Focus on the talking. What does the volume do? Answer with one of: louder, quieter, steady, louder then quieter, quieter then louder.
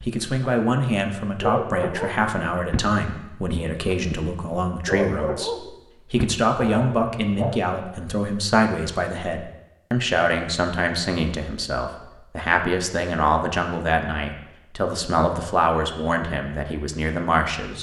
steady.